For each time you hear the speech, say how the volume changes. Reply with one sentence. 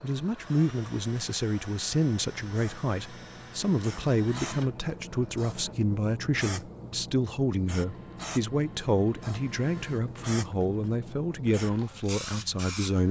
You can hear the speech from 0.0 to 13.0 s, at a steady volume.